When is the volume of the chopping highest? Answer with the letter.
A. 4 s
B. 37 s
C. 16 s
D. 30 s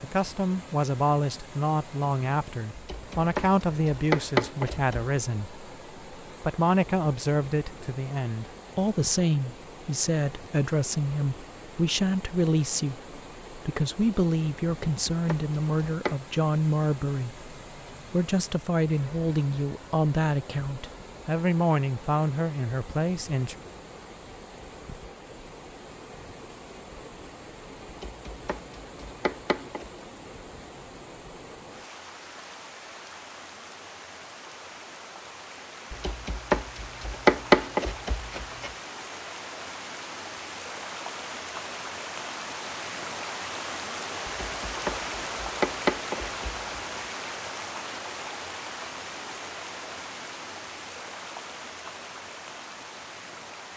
B.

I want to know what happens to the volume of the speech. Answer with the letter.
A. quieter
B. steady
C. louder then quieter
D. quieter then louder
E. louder
B.